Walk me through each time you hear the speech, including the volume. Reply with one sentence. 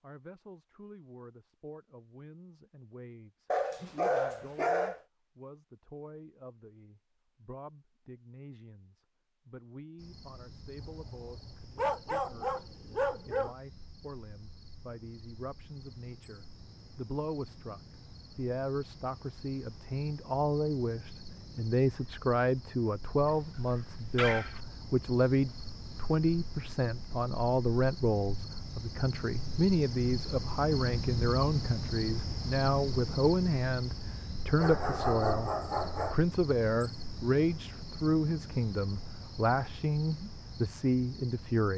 The speech can be heard from 0.0 to 41.7 s, getting louder.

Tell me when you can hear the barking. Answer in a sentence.
The barking can be heard from 3.5 to 5.0 s, from 10.8 to 13.6 s, from 23.2 to 24.6 s and from 34.5 to 36.1 s.